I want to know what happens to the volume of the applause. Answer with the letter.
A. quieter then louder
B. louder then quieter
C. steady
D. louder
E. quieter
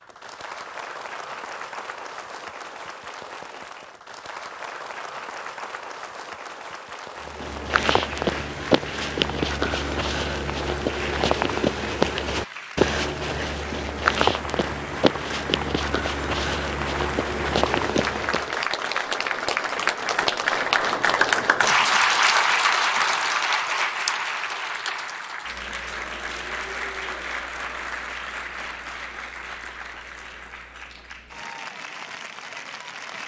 B.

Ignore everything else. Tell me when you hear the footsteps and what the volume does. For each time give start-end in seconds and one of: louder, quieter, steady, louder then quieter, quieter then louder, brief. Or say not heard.
7.2-18.6 steady.